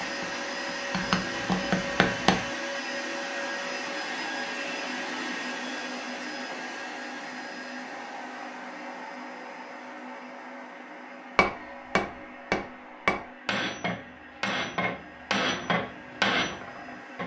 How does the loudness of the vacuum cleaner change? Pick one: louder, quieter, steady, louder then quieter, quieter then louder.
quieter.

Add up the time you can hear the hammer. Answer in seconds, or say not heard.
8 s.